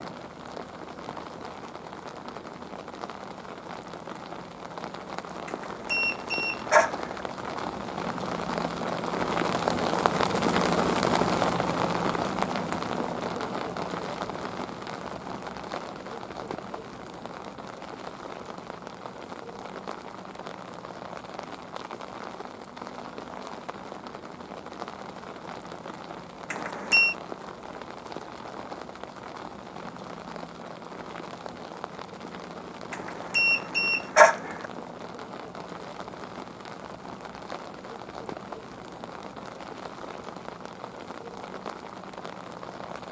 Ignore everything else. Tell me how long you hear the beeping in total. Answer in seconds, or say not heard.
4 s.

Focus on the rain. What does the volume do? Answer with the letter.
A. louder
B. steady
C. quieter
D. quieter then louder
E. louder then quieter
E.